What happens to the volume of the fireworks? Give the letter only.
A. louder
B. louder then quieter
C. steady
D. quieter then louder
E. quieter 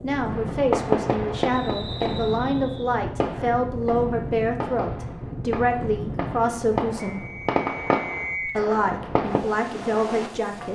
D.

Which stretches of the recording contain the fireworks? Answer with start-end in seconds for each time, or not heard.
0.3-9.4.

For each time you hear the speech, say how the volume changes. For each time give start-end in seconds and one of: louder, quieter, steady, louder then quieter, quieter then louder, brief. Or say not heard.
0.0-7.2 steady
8.4-10.7 brief.